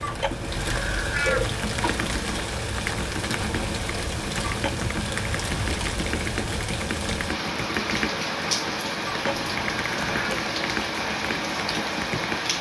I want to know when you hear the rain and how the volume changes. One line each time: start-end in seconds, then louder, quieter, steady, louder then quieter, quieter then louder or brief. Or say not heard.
0.0-12.5 steady.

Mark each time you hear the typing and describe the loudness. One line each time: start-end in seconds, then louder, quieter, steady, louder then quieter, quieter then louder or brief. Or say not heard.
1.4-12.5 steady.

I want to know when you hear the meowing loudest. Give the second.
1 s.